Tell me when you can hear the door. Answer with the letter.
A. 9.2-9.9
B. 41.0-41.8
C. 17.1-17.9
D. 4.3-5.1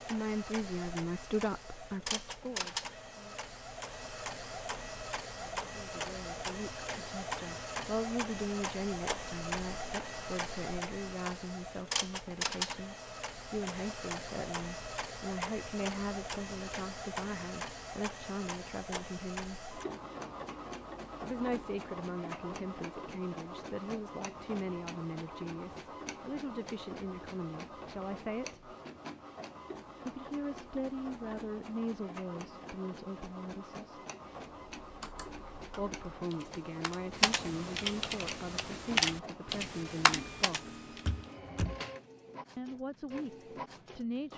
B.